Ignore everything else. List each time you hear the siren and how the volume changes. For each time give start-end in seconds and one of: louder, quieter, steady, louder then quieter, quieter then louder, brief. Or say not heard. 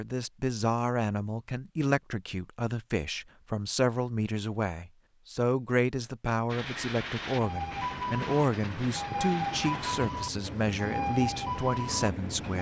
7.3-12.5 steady.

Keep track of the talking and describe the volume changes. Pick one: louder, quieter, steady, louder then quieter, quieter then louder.
steady.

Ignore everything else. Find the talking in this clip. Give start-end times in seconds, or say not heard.
0.0-12.5.